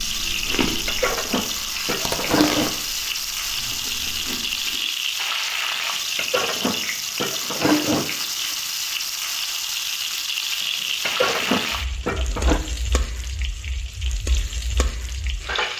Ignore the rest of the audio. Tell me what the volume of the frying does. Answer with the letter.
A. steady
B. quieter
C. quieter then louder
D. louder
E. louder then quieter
B.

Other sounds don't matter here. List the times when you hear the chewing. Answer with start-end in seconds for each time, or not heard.
0.0-4.8.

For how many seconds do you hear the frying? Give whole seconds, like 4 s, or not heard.
16 s.